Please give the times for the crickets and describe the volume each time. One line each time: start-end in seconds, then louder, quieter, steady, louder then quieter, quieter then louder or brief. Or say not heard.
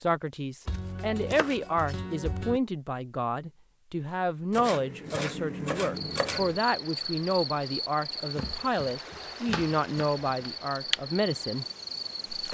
6.0-12.4 quieter then louder.